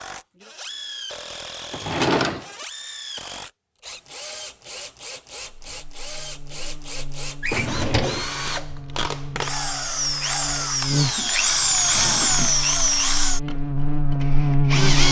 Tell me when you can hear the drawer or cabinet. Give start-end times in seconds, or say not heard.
1.7-2.5, 7.4-8.3, 10.9-12.6.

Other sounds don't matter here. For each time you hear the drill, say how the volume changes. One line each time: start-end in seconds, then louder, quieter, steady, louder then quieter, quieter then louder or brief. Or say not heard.
0.0-15.0 louder.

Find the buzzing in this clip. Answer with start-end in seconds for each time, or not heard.
5.6-15.0.